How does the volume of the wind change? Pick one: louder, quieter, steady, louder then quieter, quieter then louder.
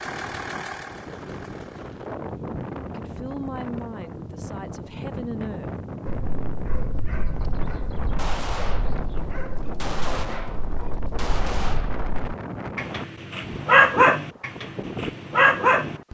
steady.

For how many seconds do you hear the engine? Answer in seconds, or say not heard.
2 s.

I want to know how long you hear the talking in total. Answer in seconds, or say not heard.
3 s.